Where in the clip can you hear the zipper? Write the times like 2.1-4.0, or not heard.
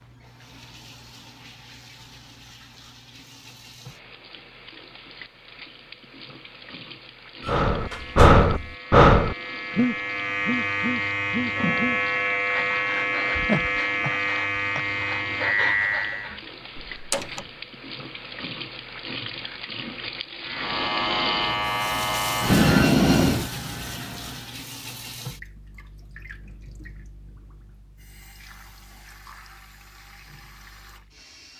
not heard.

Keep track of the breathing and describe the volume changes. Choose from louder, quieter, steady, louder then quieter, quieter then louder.
quieter.